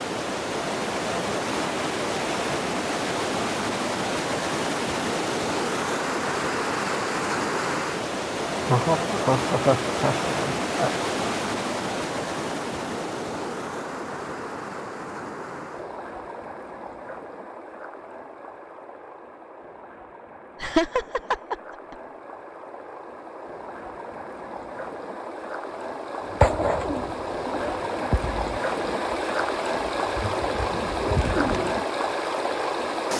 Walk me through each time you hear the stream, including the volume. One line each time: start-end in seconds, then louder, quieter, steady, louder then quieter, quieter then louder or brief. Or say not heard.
0.0-33.1 quieter then louder.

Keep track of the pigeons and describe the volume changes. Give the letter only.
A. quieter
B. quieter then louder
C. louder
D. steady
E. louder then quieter
B.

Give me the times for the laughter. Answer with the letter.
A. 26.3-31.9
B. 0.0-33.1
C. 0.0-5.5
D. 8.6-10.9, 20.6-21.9
D.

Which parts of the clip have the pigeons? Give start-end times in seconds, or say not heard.
26.3-31.9.